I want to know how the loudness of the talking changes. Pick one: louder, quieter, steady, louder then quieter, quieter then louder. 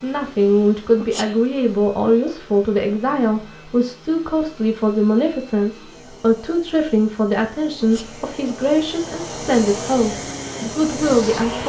steady.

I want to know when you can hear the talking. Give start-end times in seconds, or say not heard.
0.0-11.6.